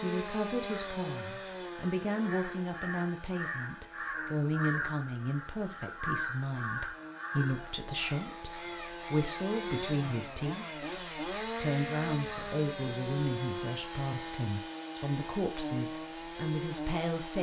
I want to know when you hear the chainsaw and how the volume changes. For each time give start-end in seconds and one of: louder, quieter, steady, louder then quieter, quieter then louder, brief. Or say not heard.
0.0-17.3 quieter then louder.